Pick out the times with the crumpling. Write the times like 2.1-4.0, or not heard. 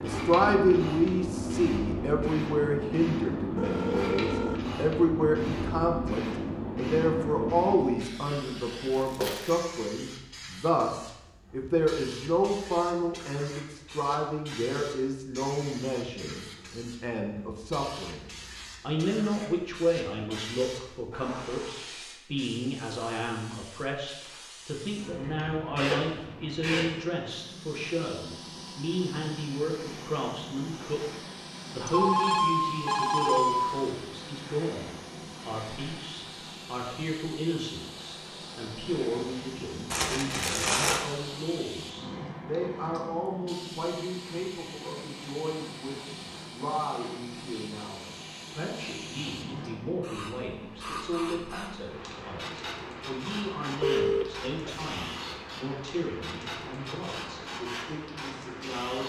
8.9-9.7, 39.9-41.0.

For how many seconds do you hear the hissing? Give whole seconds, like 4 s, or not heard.
59 s.